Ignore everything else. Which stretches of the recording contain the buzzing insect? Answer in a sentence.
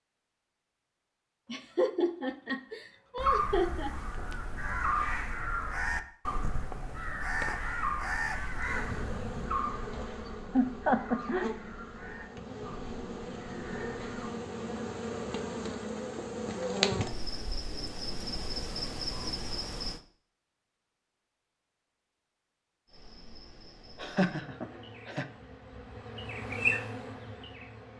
The buzzing insect can be heard from 8.6 to 20.0 s and from 22.9 to 27.9 s.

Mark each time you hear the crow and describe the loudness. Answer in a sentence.
The crow can be heard from 3.1 to 14.3 s, getting quieter.